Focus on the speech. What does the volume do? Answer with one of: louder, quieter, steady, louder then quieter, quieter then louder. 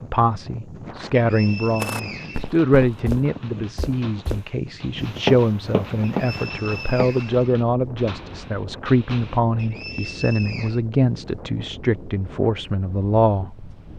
steady.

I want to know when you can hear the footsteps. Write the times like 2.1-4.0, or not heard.
1.8-7.2.